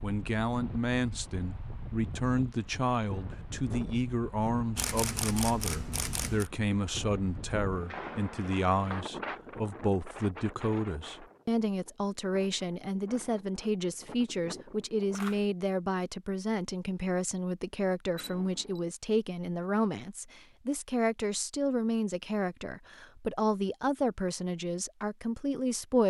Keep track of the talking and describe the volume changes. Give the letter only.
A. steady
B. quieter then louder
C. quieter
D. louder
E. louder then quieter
A.